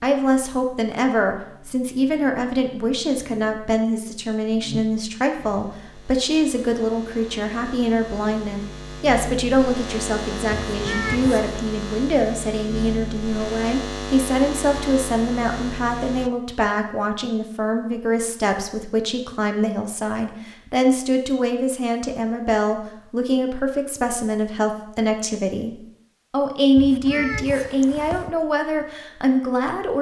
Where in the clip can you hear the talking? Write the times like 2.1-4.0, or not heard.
0.0-29.9.